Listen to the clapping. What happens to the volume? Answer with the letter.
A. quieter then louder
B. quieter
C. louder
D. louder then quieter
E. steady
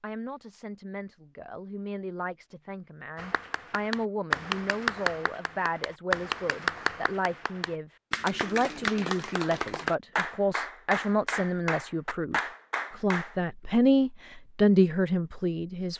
E.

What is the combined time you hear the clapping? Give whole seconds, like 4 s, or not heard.
10 s.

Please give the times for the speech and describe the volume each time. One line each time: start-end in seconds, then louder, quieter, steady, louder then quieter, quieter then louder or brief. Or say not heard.
0.0-15.9 louder.